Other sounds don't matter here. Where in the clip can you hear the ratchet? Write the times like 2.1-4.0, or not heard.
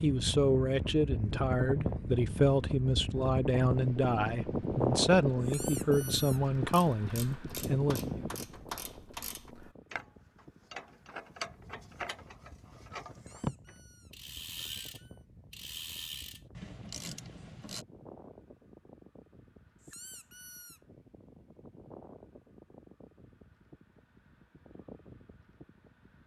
6.7-17.9.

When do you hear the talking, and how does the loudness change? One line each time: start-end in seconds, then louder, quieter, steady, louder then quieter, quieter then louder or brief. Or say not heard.
0.0-8.2 steady.